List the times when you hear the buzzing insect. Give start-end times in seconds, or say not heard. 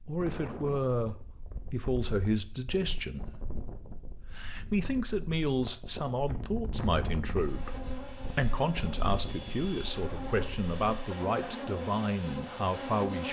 7.2-13.2.